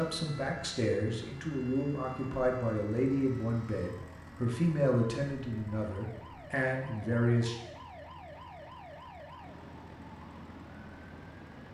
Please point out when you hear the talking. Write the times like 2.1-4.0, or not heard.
0.0-7.5.